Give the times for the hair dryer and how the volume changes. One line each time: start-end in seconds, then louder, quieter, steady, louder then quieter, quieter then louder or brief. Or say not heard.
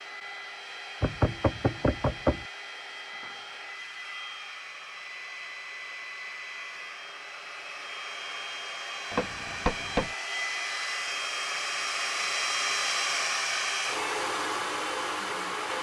0.0-15.7 louder.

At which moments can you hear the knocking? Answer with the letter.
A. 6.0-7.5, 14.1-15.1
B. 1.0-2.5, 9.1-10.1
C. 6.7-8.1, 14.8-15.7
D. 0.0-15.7
B.